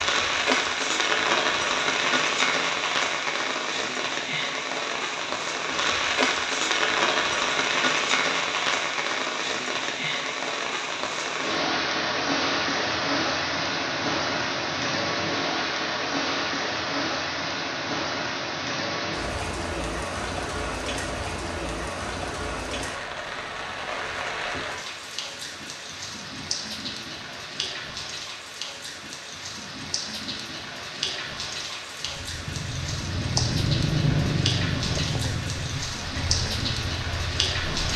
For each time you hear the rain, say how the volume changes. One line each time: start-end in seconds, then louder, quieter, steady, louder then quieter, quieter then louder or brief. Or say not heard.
0.0-37.9 quieter.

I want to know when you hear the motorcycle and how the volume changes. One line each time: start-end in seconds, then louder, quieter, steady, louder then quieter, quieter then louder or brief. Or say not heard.
32.0-37.9 louder then quieter.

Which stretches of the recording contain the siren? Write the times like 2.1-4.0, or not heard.
not heard.